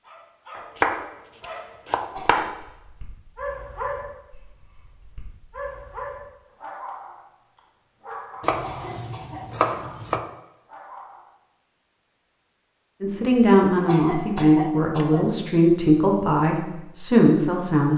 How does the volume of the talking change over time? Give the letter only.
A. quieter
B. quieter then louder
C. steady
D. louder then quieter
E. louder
C.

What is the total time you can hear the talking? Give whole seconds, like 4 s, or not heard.
5 s.